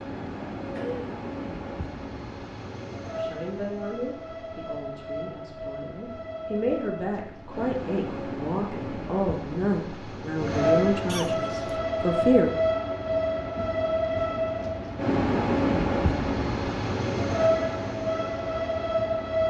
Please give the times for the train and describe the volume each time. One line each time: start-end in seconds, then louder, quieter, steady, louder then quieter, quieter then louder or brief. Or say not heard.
0.0-19.4 louder.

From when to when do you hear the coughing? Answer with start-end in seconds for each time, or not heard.
0.7-1.1, 11.1-11.8.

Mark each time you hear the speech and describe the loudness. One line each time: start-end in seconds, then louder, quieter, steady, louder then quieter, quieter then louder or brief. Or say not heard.
3.1-12.5 louder.